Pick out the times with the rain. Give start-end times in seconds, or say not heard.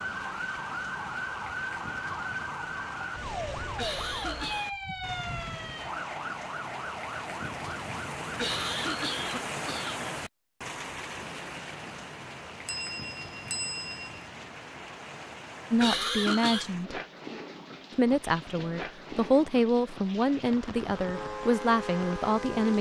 0.0-22.7.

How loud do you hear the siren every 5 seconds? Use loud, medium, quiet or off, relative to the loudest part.
loud, loud, off, off, loud.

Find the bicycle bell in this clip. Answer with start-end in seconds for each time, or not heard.
12.7-14.2.